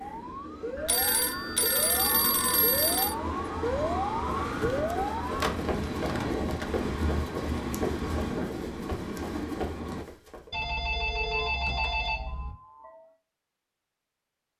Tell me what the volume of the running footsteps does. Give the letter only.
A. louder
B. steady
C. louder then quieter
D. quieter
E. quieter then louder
B.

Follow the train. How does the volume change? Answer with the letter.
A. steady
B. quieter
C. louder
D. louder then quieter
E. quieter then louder
C.